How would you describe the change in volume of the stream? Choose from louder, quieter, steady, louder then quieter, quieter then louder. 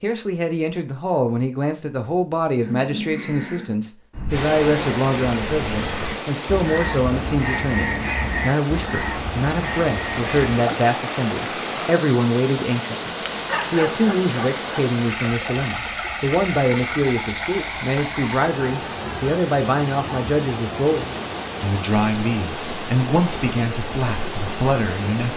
steady.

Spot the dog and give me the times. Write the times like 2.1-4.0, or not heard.
13.3-14.9.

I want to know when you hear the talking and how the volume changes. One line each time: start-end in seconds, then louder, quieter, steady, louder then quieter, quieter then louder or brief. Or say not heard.
0.0-25.3 steady.